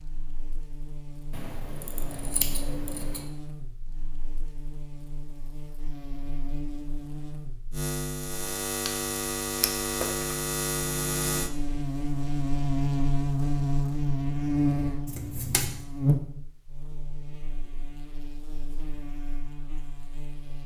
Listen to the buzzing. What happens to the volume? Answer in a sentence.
The loudness of the buzzing goes up, then down.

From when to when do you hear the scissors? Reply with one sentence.
You can hear the scissors from 1.3 to 3.2 s, from 8.8 to 10.2 s and from 15.1 to 15.8 s.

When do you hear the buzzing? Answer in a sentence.
The buzzing can be heard from 0.0 to 20.6 s.